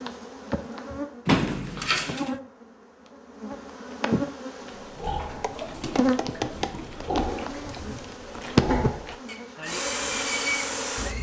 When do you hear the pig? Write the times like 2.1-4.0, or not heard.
4.7-11.1.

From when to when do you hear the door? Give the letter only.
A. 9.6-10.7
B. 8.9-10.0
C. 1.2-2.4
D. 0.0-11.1
C.